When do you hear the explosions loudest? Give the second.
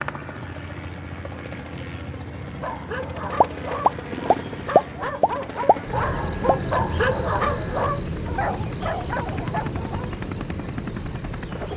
5 s.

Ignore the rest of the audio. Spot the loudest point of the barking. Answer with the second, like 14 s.
7 s.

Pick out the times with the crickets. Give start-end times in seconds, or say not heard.
0.0-11.7.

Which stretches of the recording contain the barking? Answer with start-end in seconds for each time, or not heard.
2.6-10.1.